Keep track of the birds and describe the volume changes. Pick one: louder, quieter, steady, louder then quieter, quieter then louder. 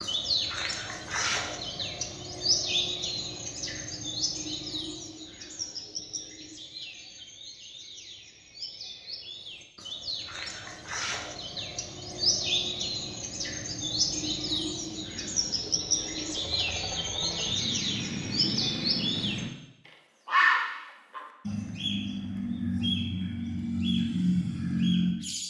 quieter then louder.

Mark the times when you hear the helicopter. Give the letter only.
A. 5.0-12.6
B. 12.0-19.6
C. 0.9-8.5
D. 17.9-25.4
B.